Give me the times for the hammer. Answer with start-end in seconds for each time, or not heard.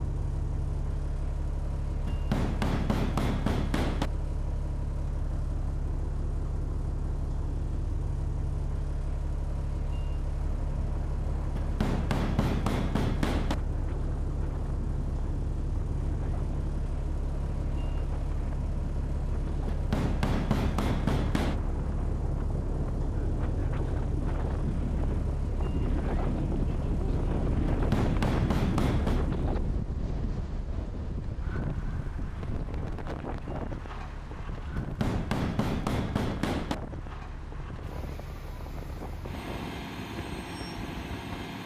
2.0-4.1, 11.6-13.6, 19.7-21.6, 27.7-29.3, 34.8-36.8.